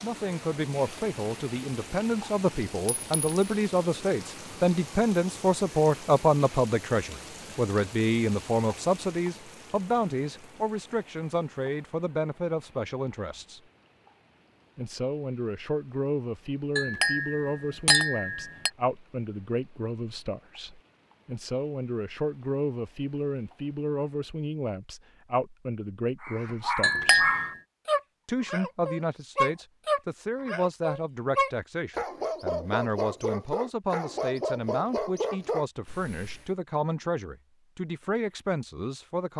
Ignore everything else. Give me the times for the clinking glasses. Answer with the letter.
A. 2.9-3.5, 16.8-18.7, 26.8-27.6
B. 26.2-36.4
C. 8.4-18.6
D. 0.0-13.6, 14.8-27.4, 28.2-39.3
A.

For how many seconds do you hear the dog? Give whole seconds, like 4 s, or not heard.
10 s.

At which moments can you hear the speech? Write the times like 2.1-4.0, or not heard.
0.0-13.6, 14.8-27.4, 28.2-39.3.